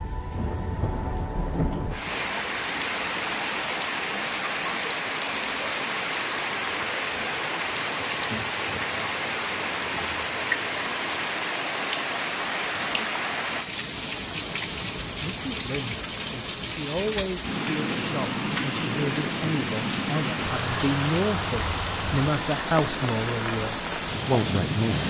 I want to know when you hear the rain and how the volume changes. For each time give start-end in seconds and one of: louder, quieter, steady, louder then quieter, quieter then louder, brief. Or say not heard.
0.0-25.0 steady.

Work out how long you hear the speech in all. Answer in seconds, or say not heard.
10 s.